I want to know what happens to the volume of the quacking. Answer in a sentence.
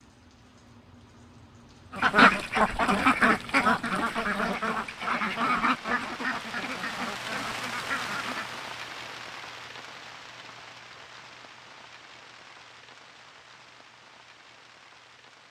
The volume of the quacking goes down.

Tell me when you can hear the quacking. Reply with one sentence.
The quacking can be heard from 1.9 to 8.6 s.